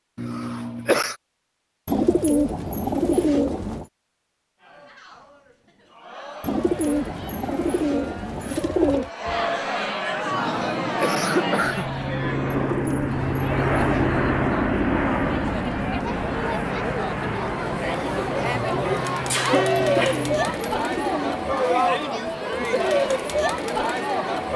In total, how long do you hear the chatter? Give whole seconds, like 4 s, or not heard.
20 s.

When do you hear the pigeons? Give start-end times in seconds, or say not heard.
1.9-3.9, 6.4-9.1, 12.5-14.1, 19.8-21.5.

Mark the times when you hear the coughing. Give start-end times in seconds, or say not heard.
0.1-1.1, 10.3-11.9, 19.3-20.7.